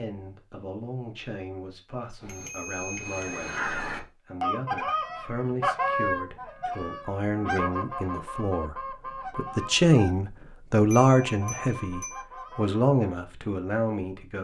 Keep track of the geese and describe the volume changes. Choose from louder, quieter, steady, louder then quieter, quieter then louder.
quieter.